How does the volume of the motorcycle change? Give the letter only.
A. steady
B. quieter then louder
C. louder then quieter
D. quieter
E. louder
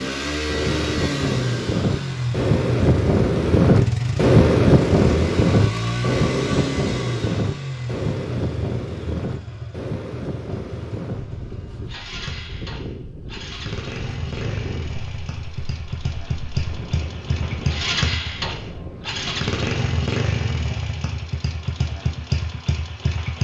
B.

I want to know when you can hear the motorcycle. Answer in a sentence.
The motorcycle can be heard from 0.0 to 23.3 s.